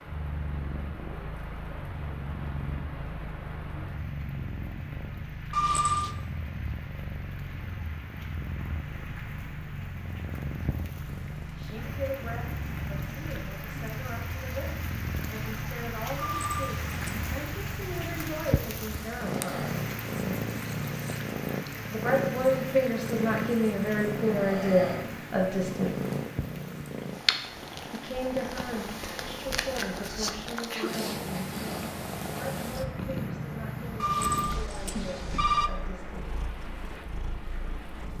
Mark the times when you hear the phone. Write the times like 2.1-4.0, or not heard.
5.5-6.1, 16.1-17.2, 34.0-35.7.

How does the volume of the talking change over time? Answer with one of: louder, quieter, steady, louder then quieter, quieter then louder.
louder then quieter.